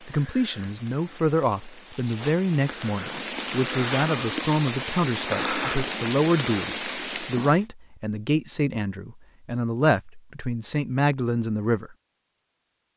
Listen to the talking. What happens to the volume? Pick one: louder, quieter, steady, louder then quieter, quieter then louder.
steady.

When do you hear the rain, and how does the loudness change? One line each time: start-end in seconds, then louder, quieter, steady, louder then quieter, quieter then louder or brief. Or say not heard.
0.0-7.7 louder.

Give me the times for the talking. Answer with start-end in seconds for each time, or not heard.
0.1-11.9.